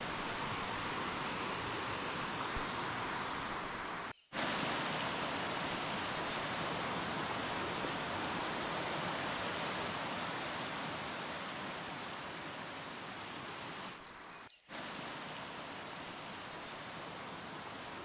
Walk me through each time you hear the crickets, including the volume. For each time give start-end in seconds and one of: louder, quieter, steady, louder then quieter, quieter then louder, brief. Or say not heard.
0.0-18.0 louder.